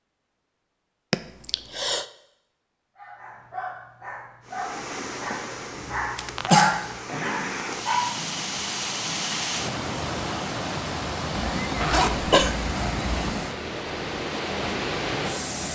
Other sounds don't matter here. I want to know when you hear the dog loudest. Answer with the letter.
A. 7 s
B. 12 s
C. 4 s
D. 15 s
A.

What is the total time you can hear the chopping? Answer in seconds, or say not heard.
not heard.